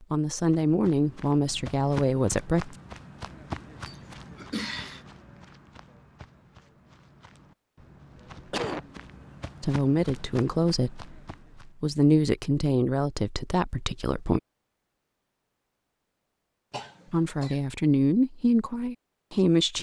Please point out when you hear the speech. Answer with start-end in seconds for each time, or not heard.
0.0-2.8, 9.6-14.4, 17.1-19.7.